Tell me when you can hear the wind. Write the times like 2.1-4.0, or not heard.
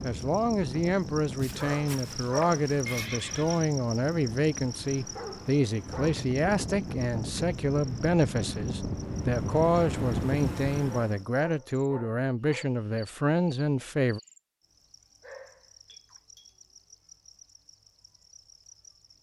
0.0-11.2.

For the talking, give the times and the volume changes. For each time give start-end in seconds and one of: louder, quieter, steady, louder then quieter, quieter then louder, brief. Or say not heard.
0.0-14.2 steady.